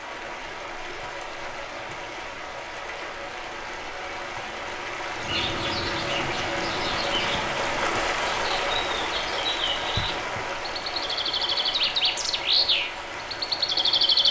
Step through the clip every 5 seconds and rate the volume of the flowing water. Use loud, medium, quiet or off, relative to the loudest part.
medium, loud, medium.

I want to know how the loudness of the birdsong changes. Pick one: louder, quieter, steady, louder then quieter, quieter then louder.
louder.